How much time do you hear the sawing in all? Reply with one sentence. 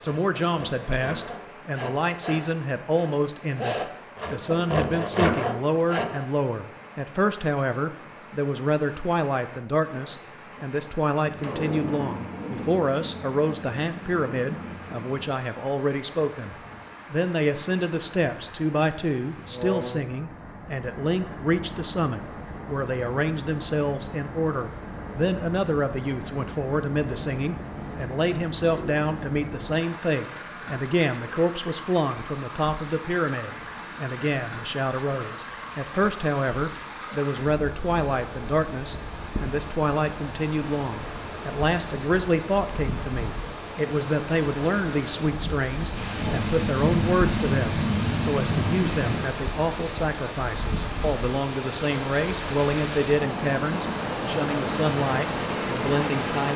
The sawing can be heard for 6 seconds in total.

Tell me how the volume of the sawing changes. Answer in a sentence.
The loudness of the sawing goes up.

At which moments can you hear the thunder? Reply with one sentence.
The thunder can be heard from 11.2 to 15.2 s and from 46.0 to 49.2 s.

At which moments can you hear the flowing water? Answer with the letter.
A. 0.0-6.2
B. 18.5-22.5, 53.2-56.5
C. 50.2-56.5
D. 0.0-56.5
D.